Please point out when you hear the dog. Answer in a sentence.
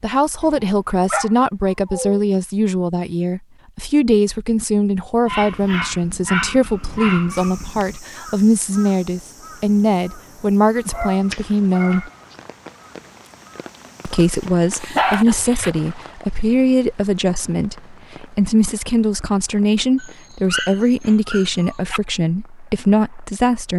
The dog can be heard from 0.4 to 2.2 s, from 5.2 to 8.0 s, from 10.8 to 12.3 s, from 14.7 to 15.7 s and from 19.9 to 22.0 s.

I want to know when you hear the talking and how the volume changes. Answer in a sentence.
You can hear the talking from 0.0 to 12.1 s, at a steady volume; and from 14.1 to 23.7 s, at a steady volume.